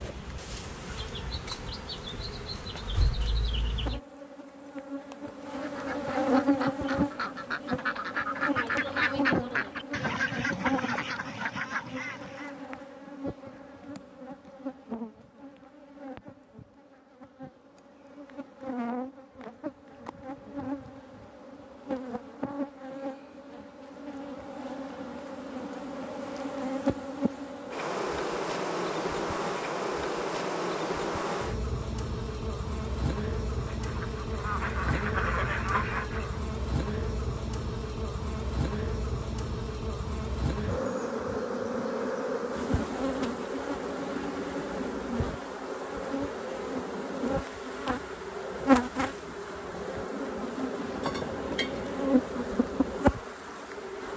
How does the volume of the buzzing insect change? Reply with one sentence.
The loudness of the buzzing insect goes down, then up.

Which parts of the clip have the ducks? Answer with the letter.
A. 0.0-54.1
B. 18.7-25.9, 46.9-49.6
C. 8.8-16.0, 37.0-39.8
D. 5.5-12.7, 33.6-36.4
D.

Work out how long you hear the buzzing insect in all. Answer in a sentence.
The buzzing insect can be heard for 54 seconds in total.